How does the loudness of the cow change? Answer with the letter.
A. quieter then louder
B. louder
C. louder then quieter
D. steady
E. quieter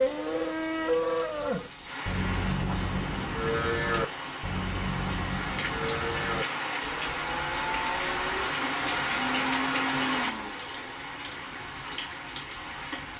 E.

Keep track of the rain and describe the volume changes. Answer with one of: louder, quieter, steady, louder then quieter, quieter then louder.
louder then quieter.